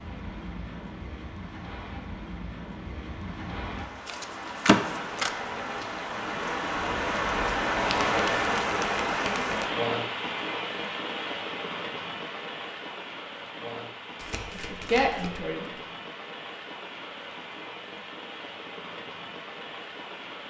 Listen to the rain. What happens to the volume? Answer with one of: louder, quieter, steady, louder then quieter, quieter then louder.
louder then quieter.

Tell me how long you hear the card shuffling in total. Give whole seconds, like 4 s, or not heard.
4 s.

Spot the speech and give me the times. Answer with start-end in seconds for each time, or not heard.
14.6-15.7.